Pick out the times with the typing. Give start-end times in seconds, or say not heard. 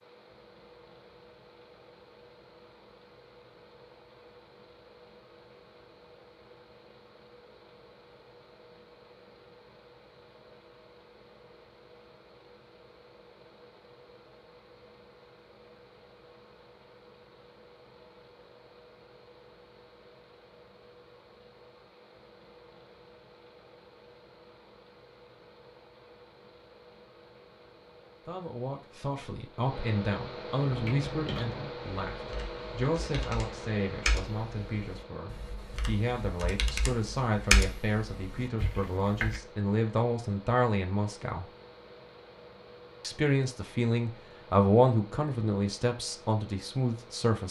30.6-39.4.